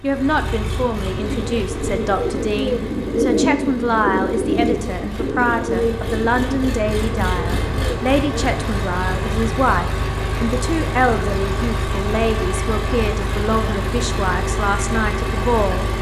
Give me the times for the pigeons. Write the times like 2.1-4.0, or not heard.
1.1-8.7.